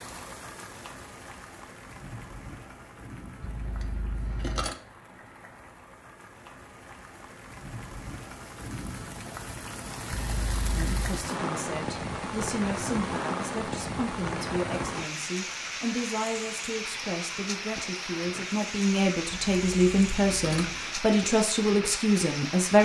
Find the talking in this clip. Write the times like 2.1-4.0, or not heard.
10.8-22.7.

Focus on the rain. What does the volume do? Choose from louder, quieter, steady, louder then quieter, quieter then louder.
louder.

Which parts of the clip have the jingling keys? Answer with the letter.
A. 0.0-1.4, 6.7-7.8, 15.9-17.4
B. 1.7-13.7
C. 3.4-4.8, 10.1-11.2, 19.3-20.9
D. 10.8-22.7
C.